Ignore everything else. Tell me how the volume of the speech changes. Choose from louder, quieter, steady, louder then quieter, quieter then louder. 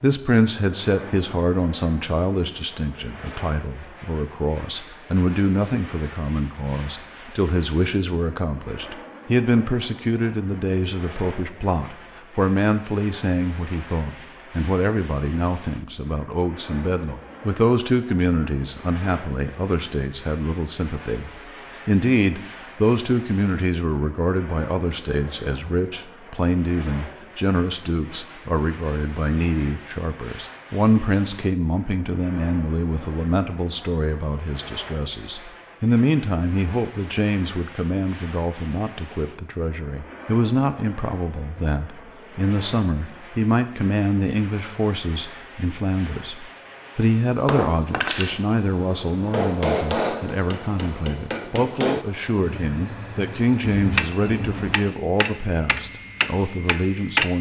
steady.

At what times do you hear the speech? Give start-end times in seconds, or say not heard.
0.0-57.3.